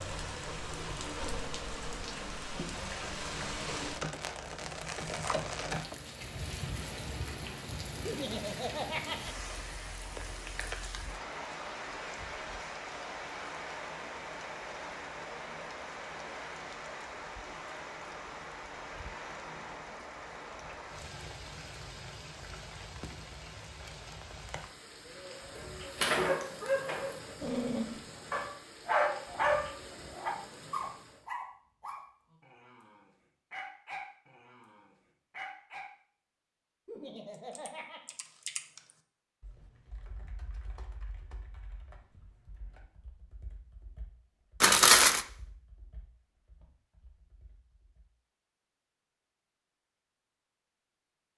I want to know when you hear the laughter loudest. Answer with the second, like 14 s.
9 s.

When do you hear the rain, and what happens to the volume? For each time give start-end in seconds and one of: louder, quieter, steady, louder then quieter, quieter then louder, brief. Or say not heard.
0.0-31.3 quieter.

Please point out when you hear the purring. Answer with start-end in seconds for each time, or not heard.
not heard.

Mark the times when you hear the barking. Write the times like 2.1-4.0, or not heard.
25.6-35.9.